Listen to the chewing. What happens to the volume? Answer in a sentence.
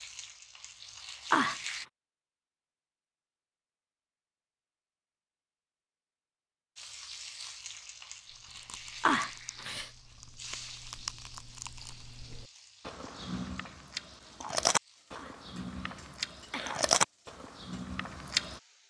The loudness of the chewing goes up.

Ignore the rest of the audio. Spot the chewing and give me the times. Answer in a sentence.
You can hear the chewing from 8.3 to 18.6 s.